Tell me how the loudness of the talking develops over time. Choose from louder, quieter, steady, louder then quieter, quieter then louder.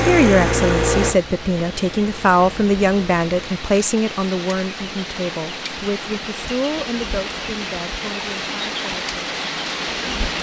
quieter.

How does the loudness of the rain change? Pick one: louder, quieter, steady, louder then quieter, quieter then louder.
louder.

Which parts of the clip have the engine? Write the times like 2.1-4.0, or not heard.
0.0-3.6.